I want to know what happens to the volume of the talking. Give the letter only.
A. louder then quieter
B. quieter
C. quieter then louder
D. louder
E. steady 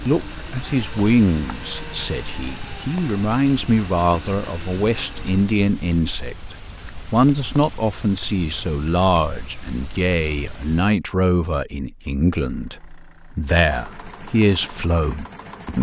E.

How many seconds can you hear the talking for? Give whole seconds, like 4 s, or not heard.
16 s.